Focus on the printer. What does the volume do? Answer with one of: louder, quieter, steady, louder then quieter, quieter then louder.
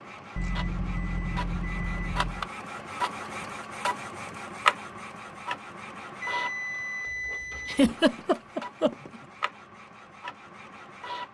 louder then quieter.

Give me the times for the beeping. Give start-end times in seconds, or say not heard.
0.3-2.5, 6.2-7.8.